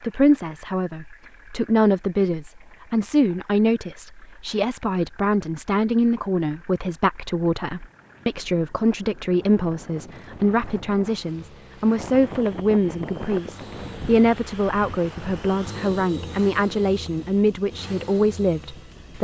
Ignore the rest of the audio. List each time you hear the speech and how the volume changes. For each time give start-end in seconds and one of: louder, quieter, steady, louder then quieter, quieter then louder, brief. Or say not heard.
0.0-19.1 steady.